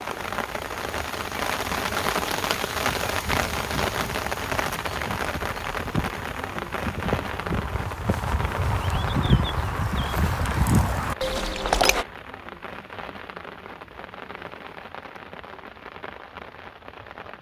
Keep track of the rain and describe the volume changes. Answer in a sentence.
The volume of the rain goes down.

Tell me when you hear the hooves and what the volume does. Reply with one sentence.
The hooves can be heard from 2.9 to 12.1 s, getting louder.